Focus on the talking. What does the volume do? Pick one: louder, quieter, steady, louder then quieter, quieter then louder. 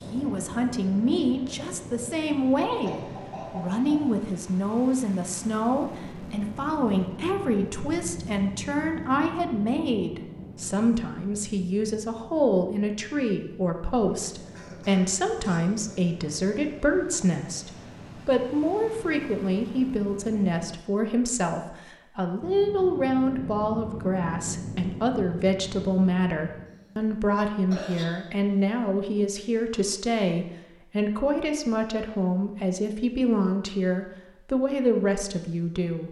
steady.